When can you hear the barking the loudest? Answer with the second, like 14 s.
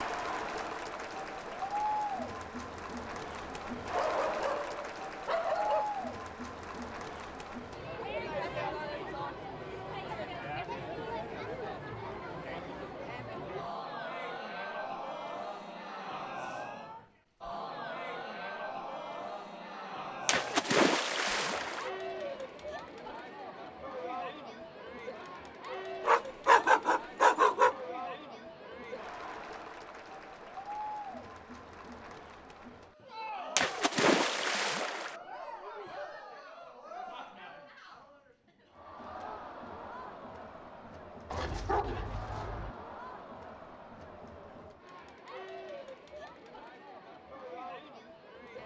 27 s.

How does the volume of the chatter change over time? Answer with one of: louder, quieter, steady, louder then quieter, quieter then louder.
quieter.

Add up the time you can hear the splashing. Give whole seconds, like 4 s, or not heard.
3 s.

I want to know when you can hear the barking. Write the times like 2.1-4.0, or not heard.
3.9-5.8, 26.1-27.8, 41.3-42.7.